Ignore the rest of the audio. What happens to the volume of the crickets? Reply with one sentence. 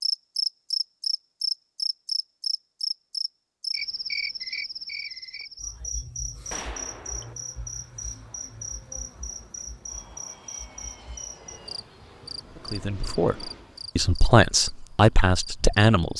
The volume of the crickets goes down.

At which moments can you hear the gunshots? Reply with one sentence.
The gunshots can be heard from 6.5 to 7.3 s.